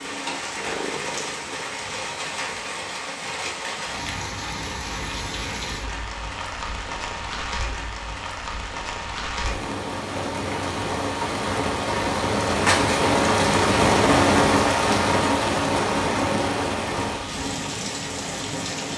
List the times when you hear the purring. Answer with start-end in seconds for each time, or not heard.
0.0-1.7.